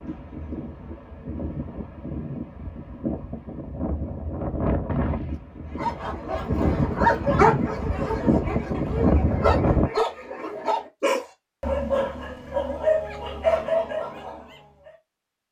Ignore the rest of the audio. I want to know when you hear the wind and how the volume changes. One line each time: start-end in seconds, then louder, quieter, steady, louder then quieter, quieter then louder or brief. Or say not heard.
0.0-9.9 louder.